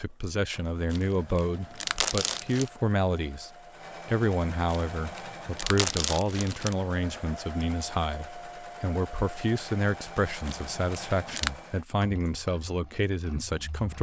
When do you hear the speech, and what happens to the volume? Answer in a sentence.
You can hear the speech from 0.0 to 13.9 s, at a steady volume.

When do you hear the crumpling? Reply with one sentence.
You can hear the crumpling from 0.9 to 2.7 s, from 4.7 to 6.8 s and from 10.4 to 11.5 s.